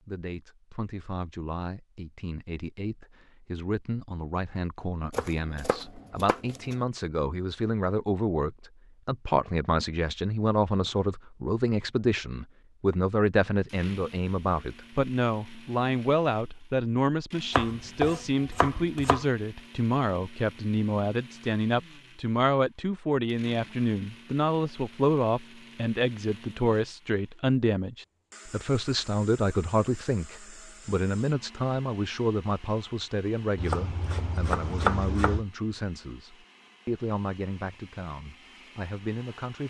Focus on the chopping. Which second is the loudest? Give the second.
35 s.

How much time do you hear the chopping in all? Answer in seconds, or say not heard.
5 s.